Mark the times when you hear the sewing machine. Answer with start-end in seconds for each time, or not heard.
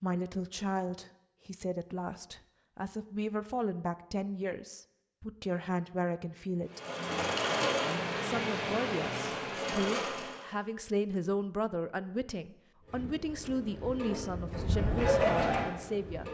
6.7-10.4, 12.8-16.2.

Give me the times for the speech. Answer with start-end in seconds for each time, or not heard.
0.0-6.8, 8.2-16.2.